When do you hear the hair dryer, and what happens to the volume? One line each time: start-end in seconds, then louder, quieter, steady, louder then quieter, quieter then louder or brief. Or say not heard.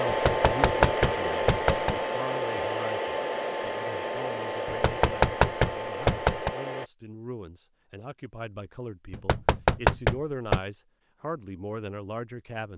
0.0-6.9 quieter.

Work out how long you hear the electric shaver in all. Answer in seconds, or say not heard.
not heard.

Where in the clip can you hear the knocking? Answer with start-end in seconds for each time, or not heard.
0.1-1.9, 4.7-6.5, 9.1-10.6.